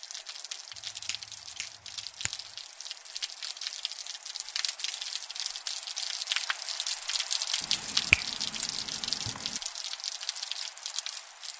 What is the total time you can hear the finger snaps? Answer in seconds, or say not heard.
3 s.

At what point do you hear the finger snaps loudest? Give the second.
8 s.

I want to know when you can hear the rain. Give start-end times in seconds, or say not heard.
0.0-11.5.